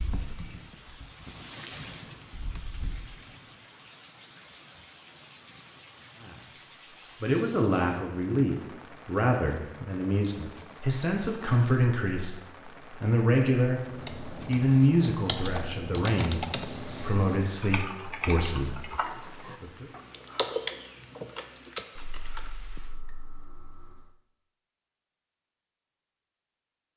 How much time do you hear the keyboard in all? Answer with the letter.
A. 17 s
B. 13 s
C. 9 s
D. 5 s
B.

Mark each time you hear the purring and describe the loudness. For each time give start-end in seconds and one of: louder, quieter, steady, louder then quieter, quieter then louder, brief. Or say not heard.
not heard.